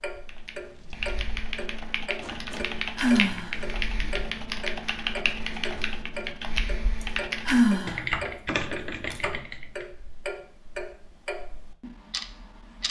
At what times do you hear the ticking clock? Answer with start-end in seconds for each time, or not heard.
0.0-12.8.